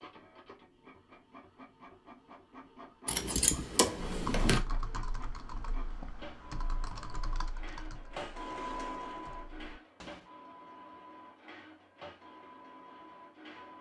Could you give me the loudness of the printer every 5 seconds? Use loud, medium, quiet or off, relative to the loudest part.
medium, loud, medium.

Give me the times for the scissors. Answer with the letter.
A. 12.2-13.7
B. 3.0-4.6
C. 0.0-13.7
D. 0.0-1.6
B.